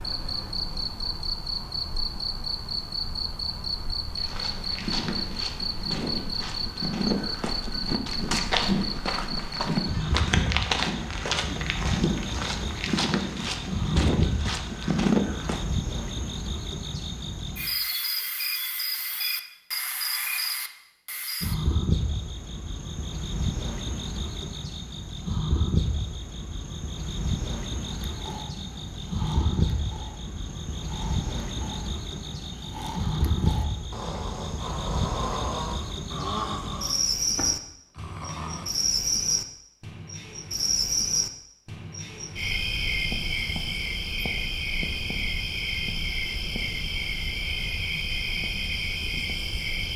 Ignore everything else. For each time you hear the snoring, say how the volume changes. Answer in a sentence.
The snoring can be heard from 27.9 to 38.6 s, getting louder.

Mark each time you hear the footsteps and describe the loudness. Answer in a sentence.
You can hear the footsteps from 4.2 to 15.7 s, getting louder.